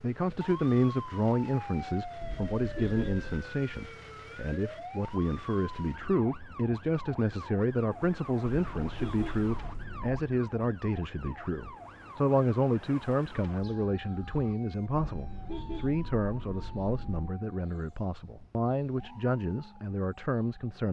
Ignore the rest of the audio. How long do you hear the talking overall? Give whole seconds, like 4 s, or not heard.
21 s.